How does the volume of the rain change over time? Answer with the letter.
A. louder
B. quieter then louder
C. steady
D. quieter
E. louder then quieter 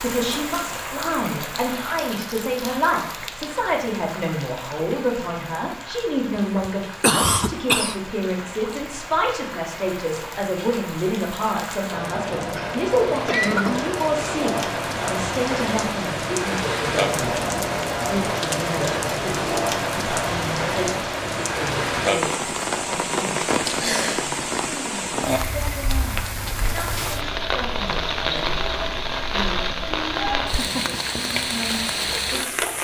A.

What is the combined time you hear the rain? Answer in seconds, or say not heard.
33 s.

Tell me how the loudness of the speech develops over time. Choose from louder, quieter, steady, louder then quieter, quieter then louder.
quieter.